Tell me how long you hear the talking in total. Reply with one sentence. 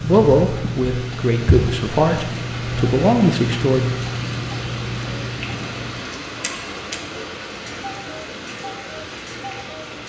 You can hear the talking for 4 seconds altogether.